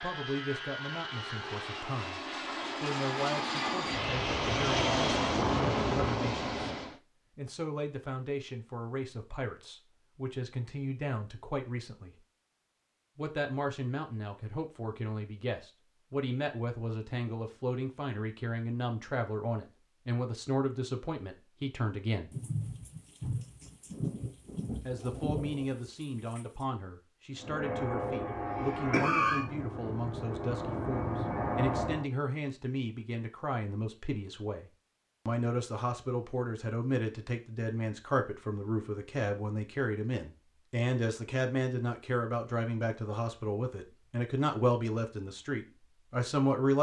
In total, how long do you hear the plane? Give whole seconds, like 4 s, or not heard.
12 s.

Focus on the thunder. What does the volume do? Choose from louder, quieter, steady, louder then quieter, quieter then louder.
quieter.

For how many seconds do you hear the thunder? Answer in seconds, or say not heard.
4 s.